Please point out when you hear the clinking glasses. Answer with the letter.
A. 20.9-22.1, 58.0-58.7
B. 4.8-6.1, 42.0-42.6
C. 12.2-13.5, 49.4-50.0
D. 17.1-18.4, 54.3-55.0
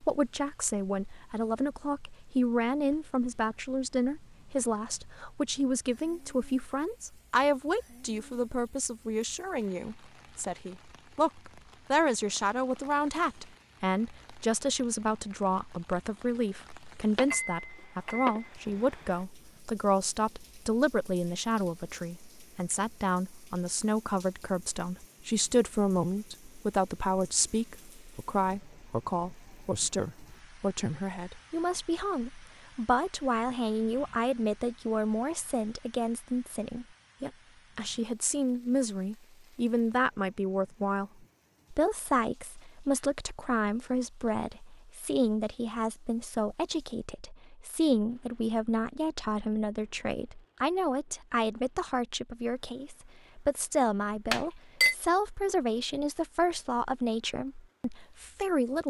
D.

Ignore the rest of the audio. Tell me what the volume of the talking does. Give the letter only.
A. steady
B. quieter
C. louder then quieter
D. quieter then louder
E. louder
A.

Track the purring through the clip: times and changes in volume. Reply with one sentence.
The purring can't be heard in this clip.